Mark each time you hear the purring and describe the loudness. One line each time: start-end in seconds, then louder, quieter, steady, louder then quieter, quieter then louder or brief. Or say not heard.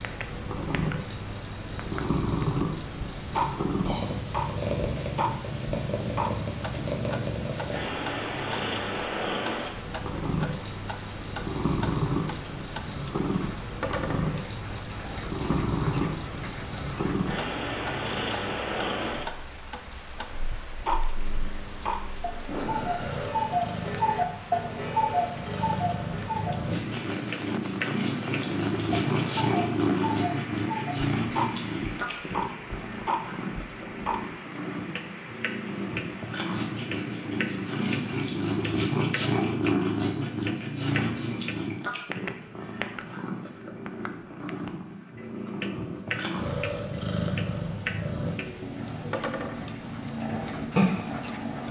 0.0-51.6 steady.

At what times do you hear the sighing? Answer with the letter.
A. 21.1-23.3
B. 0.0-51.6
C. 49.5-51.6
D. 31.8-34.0
A.